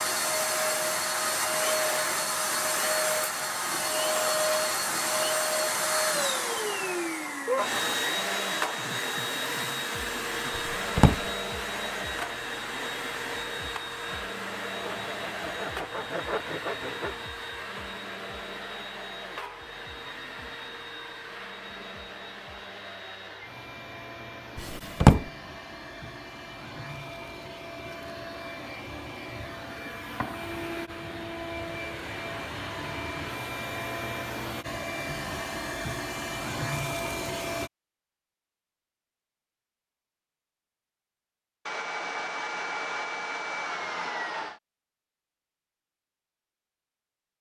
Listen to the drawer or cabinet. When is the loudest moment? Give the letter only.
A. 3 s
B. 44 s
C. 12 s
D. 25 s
D.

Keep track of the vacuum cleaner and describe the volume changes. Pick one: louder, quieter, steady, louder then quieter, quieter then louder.
quieter then louder.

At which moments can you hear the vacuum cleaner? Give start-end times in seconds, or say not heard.
0.0-37.7.